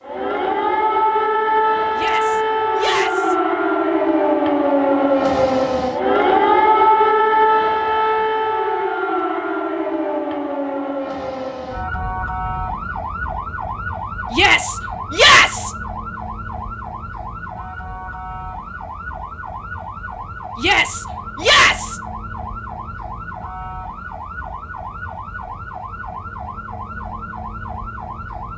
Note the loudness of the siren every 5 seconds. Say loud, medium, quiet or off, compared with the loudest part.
loud, loud, medium, quiet, quiet, quiet.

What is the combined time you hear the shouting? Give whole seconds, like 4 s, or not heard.
4 s.